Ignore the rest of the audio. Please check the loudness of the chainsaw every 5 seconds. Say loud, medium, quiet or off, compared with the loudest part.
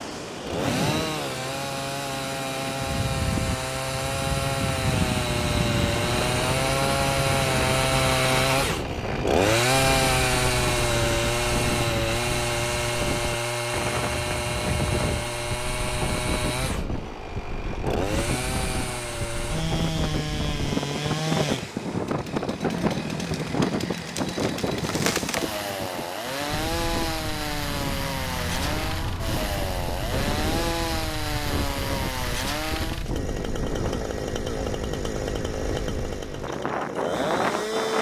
medium, loud, loud, medium, medium, medium, medium, medium.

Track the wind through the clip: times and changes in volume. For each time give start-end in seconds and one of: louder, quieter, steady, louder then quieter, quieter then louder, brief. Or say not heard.
0.0-37.9 steady.